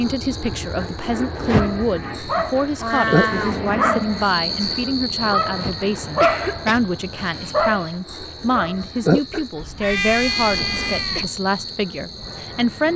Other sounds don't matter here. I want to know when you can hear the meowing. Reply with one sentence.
The meowing can be heard from 2.8 to 3.6 s and from 9.6 to 11.3 s.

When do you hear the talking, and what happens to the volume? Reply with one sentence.
You can hear the talking from 0.0 to 12.9 s, at a steady volume.